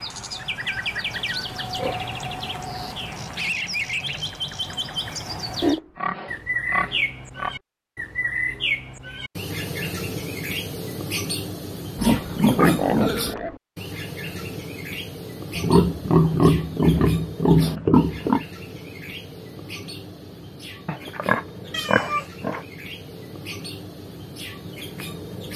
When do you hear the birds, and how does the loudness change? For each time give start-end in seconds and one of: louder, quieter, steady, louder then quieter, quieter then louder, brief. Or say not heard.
0.0-25.5 quieter.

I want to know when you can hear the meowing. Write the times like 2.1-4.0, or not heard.
21.7-22.3.